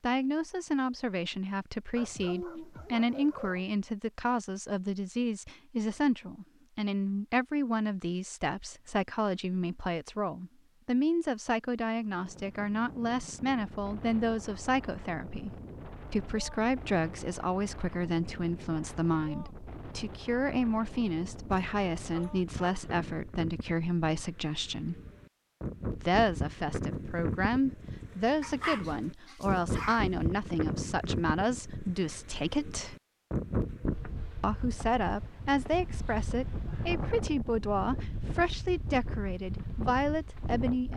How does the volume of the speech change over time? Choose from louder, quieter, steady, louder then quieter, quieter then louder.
steady.